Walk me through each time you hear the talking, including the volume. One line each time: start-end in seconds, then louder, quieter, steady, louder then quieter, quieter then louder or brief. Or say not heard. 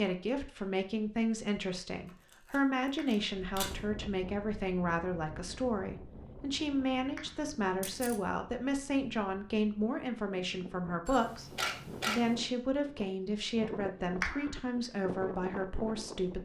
0.0-16.3 steady.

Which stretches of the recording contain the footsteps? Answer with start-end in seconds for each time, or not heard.
not heard.